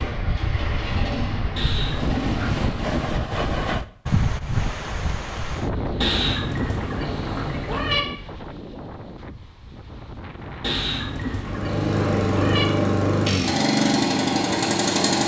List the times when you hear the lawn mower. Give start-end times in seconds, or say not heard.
0.0-3.0, 11.4-15.2.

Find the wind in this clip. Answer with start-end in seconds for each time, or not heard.
0.0-11.6.